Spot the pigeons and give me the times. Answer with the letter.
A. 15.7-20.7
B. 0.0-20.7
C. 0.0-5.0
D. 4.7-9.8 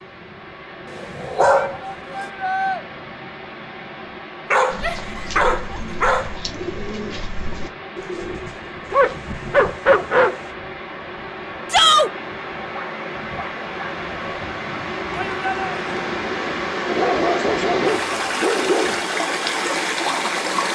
D.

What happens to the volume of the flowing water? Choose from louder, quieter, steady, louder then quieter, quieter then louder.
louder.